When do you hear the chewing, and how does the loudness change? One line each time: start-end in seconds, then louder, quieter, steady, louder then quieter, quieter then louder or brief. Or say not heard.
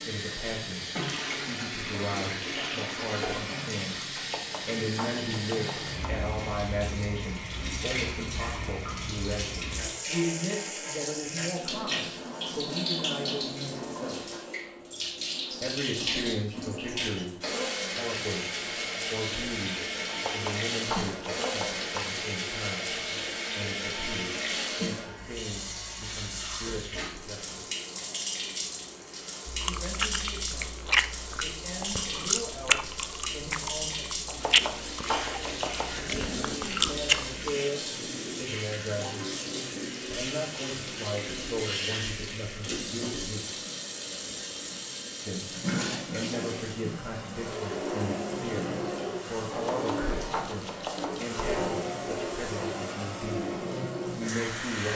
29.4-37.5 quieter then louder.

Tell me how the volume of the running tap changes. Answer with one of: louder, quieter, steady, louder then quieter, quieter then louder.
steady.